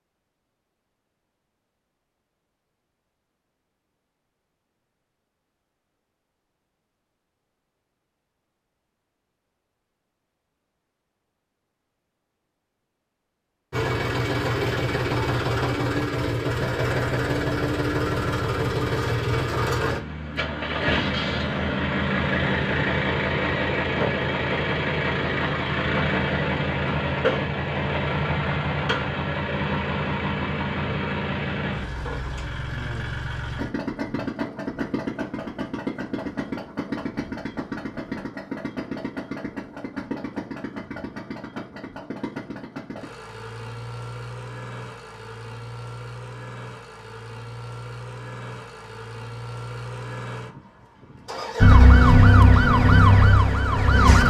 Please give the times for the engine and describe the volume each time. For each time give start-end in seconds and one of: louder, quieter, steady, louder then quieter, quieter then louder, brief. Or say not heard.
13.7-54.2 quieter.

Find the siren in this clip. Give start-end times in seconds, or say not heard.
51.6-54.2.